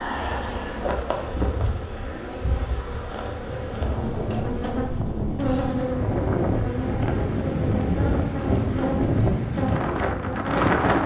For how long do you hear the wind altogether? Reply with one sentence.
The wind can be heard for 7 seconds in total.